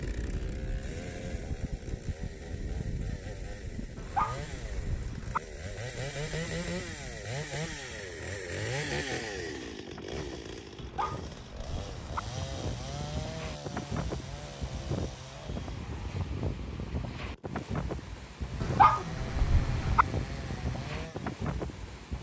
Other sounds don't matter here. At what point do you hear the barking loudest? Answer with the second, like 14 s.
19 s.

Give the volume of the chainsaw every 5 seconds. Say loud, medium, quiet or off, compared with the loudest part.
medium, loud, medium, medium, medium.